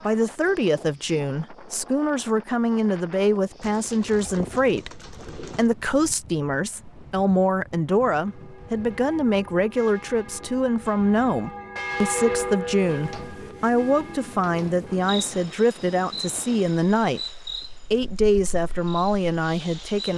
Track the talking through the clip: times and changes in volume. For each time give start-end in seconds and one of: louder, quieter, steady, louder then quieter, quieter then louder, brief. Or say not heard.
0.0-20.1 steady.